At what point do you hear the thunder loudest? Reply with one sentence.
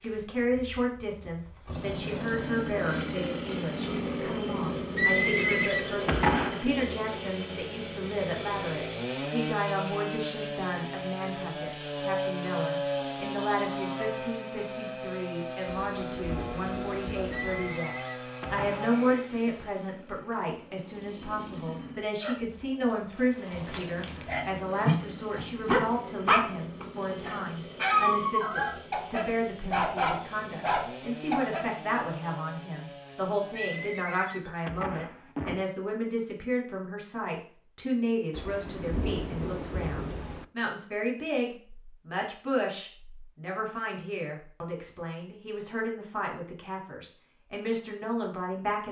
The loudest moment of the thunder is at 39 seconds.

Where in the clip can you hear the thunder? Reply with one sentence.
You can hear the thunder from 15.9 to 17.6 s and from 38.3 to 40.5 s.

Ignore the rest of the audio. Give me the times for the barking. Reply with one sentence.
The barking can be heard from 22.2 to 31.6 s.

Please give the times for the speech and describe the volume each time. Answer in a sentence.
The speech can be heard from 0.0 to 48.8 s, at a steady volume.